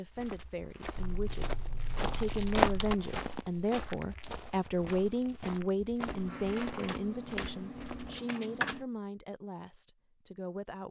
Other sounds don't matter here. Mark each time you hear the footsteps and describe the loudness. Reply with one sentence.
The footsteps can be heard from 0.1 to 8.2 s, getting louder then quieter.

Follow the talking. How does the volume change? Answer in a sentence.
The loudness of the talking goes up, then down.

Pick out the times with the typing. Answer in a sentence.
You can hear the typing from 0.9 to 3.0 s and from 6.0 to 8.8 s.